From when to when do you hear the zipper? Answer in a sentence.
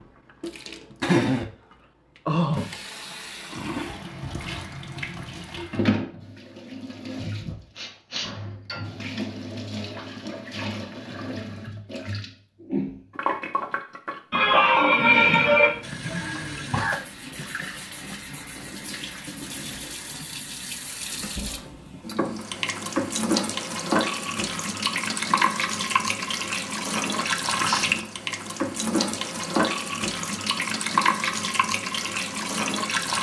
You can't hear the zipper here.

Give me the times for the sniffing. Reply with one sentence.
The sniffing can be heard from 7.4 to 8.5 s, from 14.3 to 15.8 s and from 27.1 to 27.9 s.